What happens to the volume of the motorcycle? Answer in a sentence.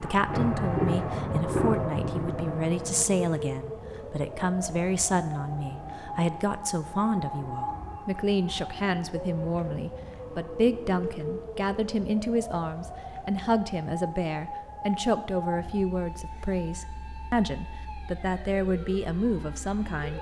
The loudness of the motorcycle goes down.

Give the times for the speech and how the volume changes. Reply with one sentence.
The speech can be heard from 0.0 to 20.1 s, at a steady volume.